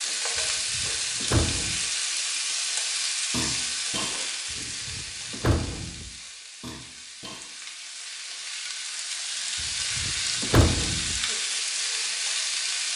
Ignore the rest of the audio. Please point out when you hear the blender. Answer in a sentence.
You can't hear the blender here.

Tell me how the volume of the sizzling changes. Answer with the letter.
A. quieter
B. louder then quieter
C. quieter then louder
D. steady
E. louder
C.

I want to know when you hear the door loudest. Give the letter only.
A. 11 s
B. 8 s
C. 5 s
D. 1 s
A.